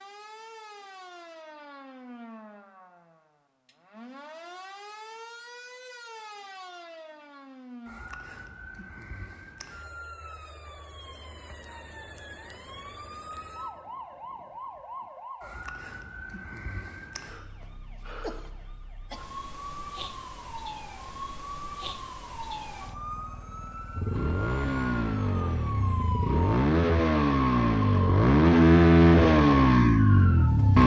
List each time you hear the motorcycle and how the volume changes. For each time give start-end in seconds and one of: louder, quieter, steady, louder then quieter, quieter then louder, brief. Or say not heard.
23.9-30.8 louder.